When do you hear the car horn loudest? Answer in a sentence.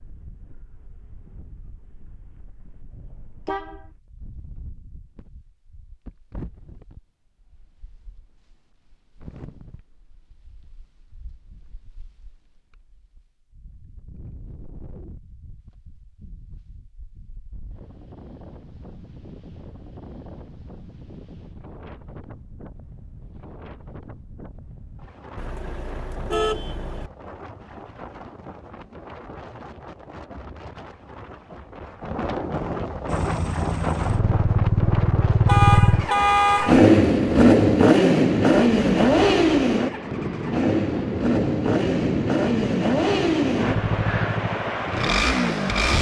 The loudest moment of the car horn is at 36 seconds.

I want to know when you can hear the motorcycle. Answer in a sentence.
The motorcycle can be heard from 33.0 to 45.9 s.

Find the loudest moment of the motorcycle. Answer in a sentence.
The loudest moment of the motorcycle is at 37 seconds.